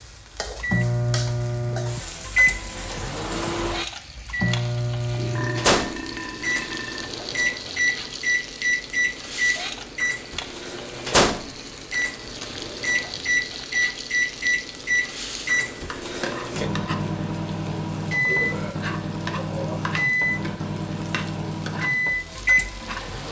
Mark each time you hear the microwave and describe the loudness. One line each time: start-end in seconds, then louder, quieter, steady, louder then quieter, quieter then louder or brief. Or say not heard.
0.0-23.2 steady.